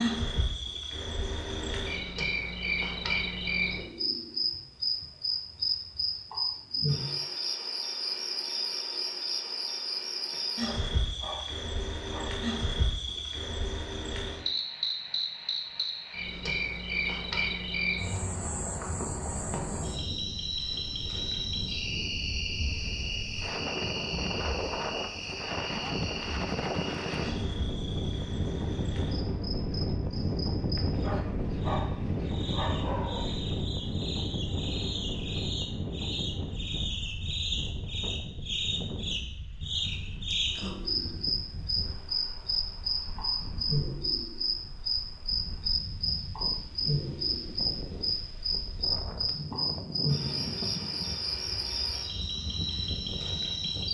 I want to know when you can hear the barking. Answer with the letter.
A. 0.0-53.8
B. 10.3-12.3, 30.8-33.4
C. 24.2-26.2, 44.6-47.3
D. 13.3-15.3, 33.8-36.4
B.